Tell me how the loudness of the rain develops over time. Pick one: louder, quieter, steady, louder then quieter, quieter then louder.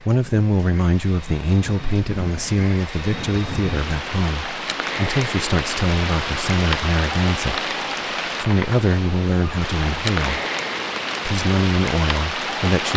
louder.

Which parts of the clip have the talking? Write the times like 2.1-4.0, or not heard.
0.0-7.7, 8.4-10.4, 11.2-12.9.